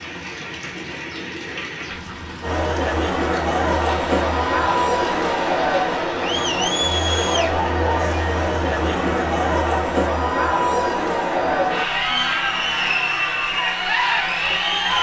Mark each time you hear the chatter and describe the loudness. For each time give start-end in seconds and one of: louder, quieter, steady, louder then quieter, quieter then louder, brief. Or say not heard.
2.4-14.9 steady.